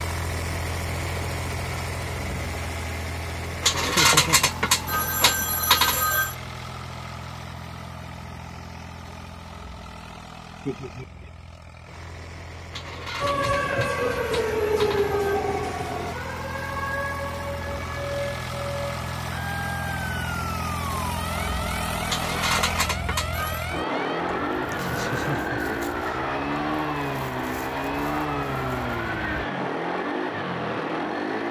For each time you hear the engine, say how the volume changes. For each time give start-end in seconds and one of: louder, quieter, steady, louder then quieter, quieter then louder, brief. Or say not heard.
0.0-31.4 quieter then louder.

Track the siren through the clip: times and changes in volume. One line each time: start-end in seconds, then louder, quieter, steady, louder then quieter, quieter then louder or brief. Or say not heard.
13.2-29.4 quieter.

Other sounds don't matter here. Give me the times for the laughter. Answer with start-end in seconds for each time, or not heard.
3.9-4.5, 10.7-11.3, 24.7-26.2.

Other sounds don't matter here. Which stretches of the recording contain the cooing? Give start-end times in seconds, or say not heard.
not heard.